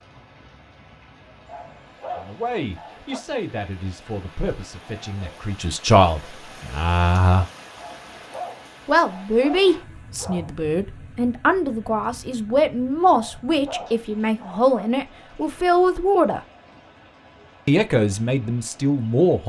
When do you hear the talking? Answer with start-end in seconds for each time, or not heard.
2.1-7.5, 8.8-16.4, 17.6-19.4.